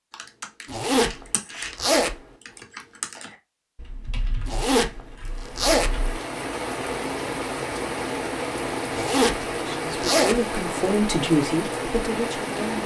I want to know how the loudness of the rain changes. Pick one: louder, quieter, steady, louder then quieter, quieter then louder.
steady.